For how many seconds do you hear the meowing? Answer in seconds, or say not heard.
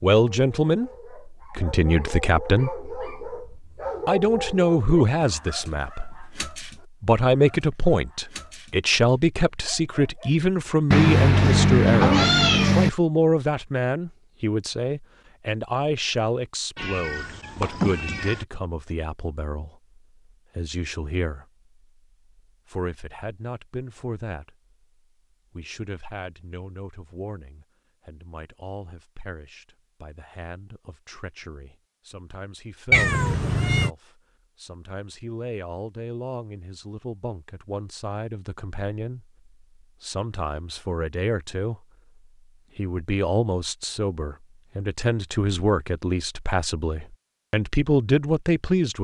5 s.